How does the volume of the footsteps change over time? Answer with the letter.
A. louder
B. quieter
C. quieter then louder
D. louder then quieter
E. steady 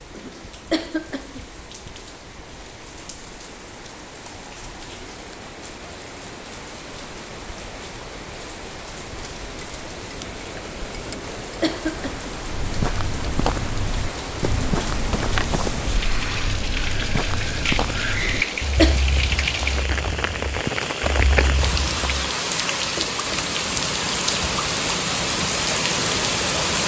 B.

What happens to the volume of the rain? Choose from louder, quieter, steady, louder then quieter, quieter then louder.
louder.